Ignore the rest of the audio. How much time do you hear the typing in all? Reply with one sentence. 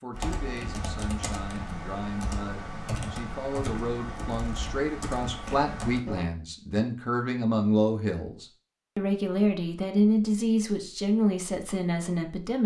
The typing can be heard for 6 seconds in total.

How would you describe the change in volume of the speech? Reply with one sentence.
The volume of the speech goes up.